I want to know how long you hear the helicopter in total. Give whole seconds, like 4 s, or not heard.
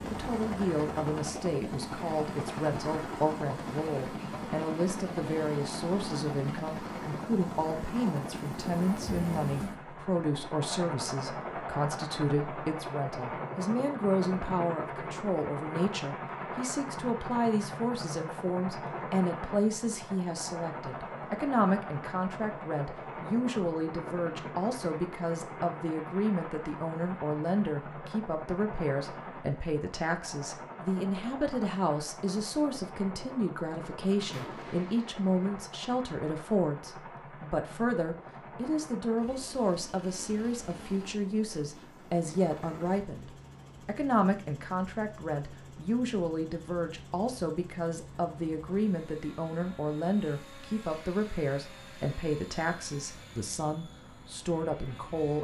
55 s.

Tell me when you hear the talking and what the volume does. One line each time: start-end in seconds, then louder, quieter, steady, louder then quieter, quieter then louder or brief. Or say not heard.
0.1-55.3 steady.